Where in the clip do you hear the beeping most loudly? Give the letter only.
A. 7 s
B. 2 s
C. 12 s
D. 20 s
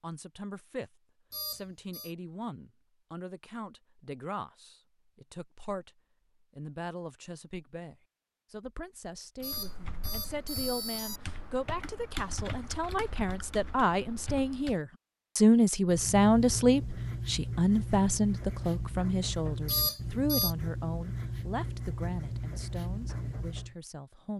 D.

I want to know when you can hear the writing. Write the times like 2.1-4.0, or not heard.
15.8-23.8.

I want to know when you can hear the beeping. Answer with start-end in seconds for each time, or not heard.
1.3-2.1, 9.4-11.2, 19.6-20.6.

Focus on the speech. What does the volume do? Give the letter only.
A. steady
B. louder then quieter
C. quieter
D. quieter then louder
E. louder
B.